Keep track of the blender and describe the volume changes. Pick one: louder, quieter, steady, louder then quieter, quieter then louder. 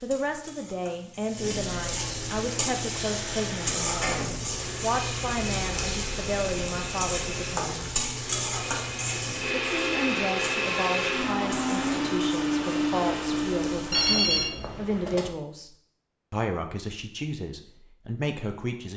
louder.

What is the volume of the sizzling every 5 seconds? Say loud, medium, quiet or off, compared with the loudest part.
loud, loud, medium, off.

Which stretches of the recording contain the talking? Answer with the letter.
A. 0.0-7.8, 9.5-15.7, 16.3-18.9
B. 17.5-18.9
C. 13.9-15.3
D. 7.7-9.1
A.